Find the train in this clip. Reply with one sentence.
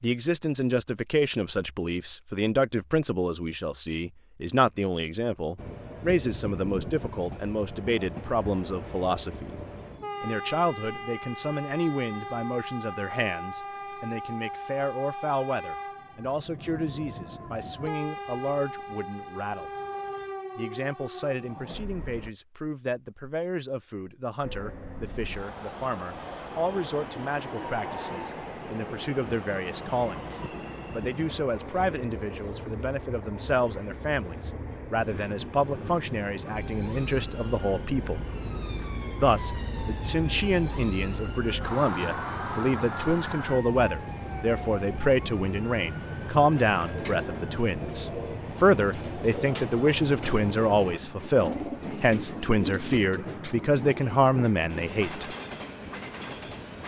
The train can be heard from 5.5 to 22.3 s and from 24.4 to 56.8 s.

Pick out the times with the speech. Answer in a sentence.
You can hear the speech from 0.0 to 9.6 s, from 10.2 to 19.7 s, from 20.6 to 38.2 s and from 39.2 to 55.3 s.